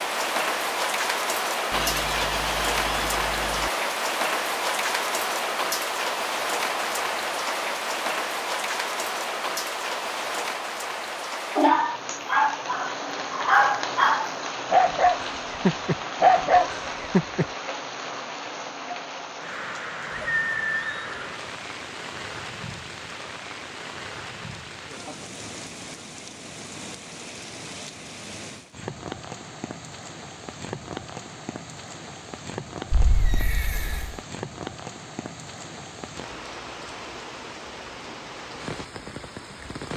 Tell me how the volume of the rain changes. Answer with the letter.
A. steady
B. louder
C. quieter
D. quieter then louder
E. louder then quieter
C.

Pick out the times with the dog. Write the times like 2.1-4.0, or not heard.
11.6-17.4.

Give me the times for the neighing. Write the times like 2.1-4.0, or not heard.
1.7-3.7, 20.4-21.3, 32.9-34.1.